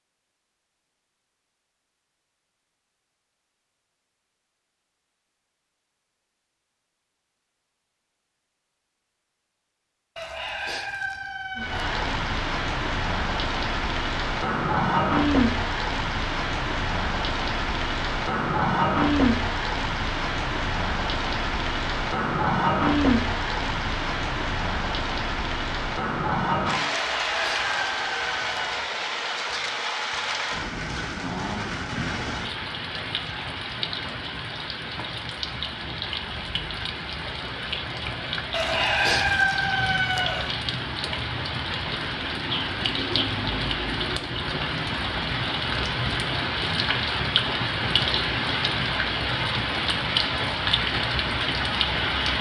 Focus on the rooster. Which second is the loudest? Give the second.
39 s.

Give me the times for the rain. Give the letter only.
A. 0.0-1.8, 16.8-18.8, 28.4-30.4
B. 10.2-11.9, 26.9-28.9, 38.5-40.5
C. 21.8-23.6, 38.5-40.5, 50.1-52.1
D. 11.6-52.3
D.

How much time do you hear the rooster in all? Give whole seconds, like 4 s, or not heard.
6 s.